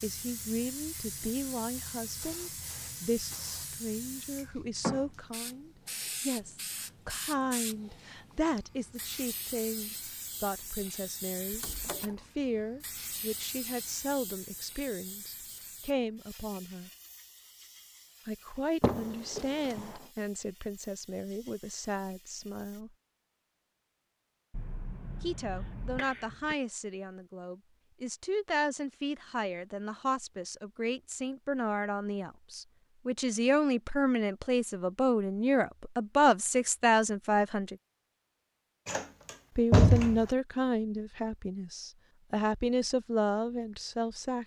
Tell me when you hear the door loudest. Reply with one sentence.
The loudest moment of the door is at 40 seconds.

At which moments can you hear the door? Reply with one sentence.
The door can be heard from 11.5 to 12.1 s, from 18.8 to 19.9 s and from 38.9 to 40.2 s.